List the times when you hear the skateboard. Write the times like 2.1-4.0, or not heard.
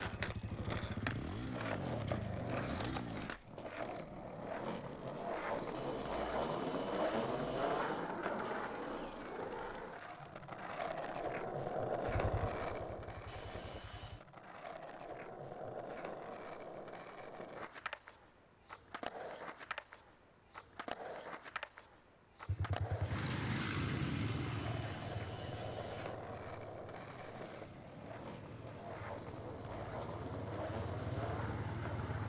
0.0-32.2.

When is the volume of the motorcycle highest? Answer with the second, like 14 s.
24 s.